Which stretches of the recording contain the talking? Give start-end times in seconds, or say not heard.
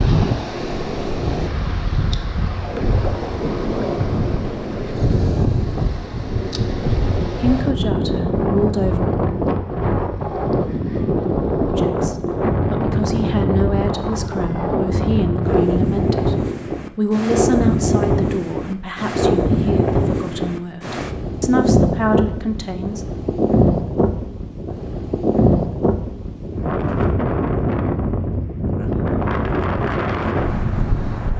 7.2-9.2, 11.8-16.4, 16.9-23.0.